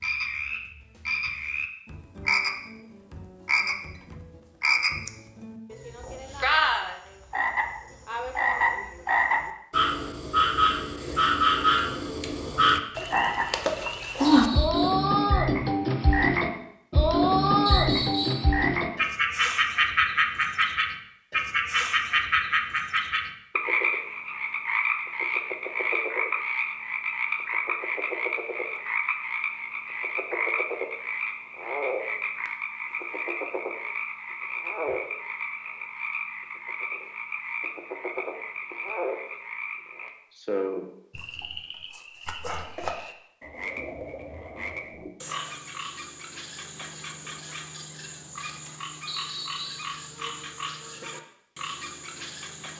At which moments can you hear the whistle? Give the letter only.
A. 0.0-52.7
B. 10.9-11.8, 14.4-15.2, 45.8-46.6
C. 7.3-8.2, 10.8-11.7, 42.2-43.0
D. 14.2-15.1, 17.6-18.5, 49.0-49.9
D.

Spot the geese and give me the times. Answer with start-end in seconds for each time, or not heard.
not heard.